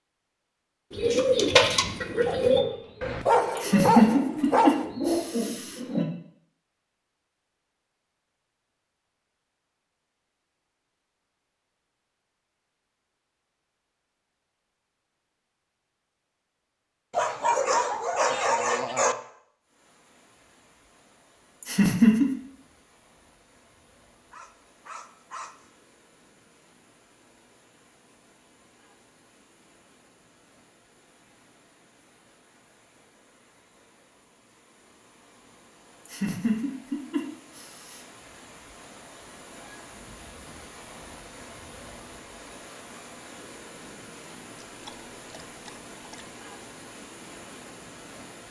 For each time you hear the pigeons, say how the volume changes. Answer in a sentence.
You can hear the pigeons from 0.9 to 6.0 s, getting quieter then louder.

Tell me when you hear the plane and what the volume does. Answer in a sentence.
The plane can't be heard in this clip.